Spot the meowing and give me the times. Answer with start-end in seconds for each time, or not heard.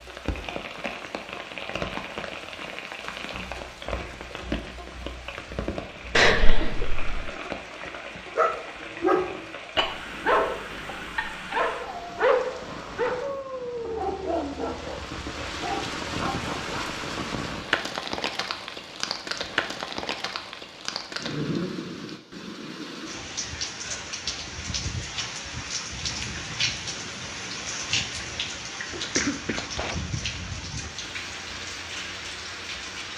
not heard.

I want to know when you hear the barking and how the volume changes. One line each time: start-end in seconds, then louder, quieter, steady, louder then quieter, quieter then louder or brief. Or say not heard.
8.3-16.9 quieter.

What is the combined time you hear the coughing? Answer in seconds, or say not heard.
3 s.